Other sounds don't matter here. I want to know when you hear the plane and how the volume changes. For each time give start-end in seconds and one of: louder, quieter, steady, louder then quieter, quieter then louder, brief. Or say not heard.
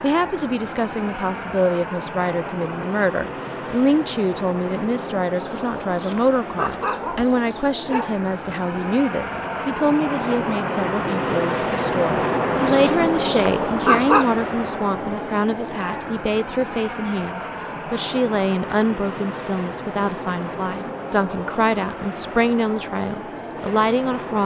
0.0-24.4 louder then quieter.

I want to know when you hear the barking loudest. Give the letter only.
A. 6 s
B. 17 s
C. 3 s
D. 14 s
D.